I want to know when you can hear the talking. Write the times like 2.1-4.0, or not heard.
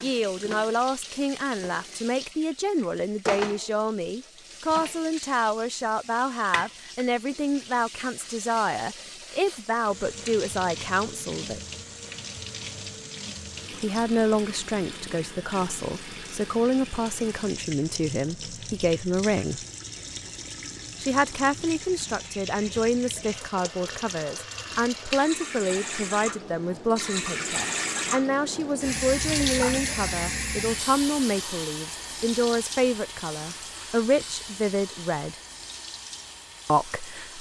0.0-11.6, 13.7-19.6, 21.0-35.4, 36.6-37.3.